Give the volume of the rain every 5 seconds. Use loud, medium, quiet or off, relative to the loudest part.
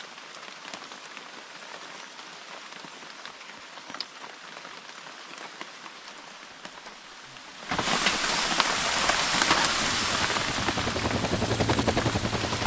quiet, loud, loud.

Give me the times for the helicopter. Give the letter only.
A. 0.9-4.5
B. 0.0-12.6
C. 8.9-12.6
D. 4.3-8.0
C.